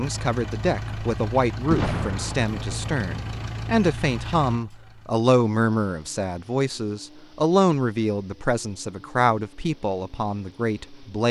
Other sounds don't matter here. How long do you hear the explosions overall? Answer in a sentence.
The explosions can be heard for 2 seconds in total.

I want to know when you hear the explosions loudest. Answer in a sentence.
The volume of the explosions peaks at 2 seconds.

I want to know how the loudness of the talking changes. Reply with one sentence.
The volume of the talking stays about the same.